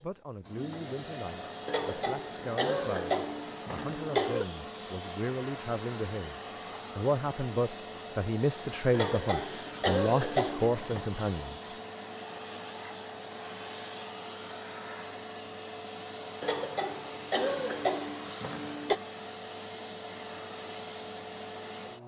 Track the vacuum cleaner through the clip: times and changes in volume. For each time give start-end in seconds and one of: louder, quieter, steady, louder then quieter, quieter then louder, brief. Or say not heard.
0.0-22.0 steady.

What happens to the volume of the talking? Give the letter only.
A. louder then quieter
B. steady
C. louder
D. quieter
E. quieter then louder
C.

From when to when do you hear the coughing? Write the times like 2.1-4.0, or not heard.
1.6-4.5, 8.9-11.1, 16.4-19.0.